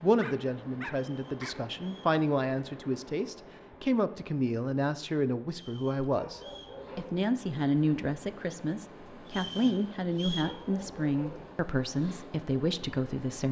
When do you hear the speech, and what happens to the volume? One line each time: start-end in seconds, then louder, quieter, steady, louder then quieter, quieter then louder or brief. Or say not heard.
0.0-13.4 steady.